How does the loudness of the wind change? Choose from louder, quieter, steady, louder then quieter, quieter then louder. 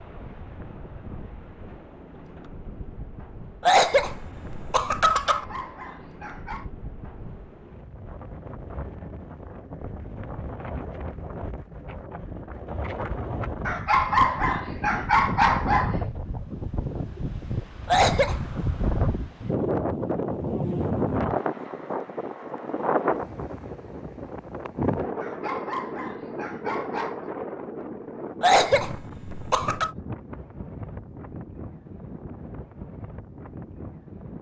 louder then quieter.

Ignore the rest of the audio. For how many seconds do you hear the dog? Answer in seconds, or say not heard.
6 s.